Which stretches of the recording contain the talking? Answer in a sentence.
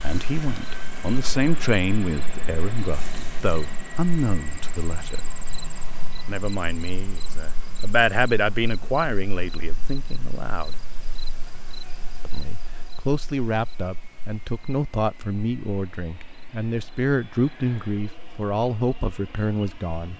You can hear the talking from 0.0 to 5.2 s, from 6.2 to 10.8 s and from 12.2 to 20.1 s.